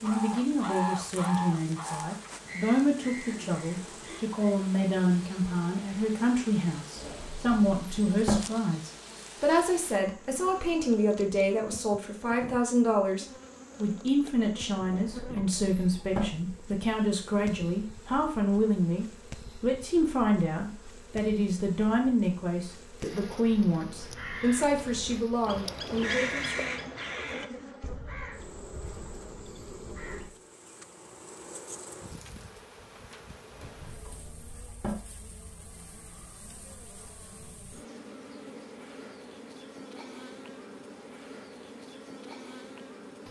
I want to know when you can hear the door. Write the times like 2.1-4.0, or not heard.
7.0-8.4, 14.8-16.2, 33.5-35.0.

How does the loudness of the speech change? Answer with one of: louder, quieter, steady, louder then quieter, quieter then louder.
steady.